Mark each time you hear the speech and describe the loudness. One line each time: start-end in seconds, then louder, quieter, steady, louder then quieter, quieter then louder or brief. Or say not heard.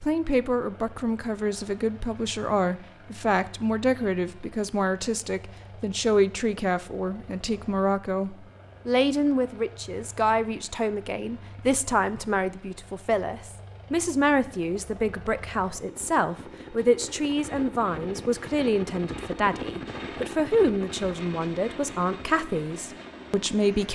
0.0-23.8 steady.